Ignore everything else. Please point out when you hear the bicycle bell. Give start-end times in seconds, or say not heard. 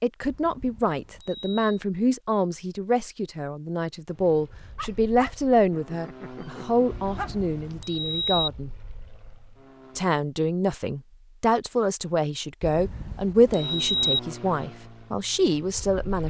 0.2-1.8, 6.9-8.5, 12.6-14.2.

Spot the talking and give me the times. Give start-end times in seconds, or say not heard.
0.0-8.7, 9.9-16.2.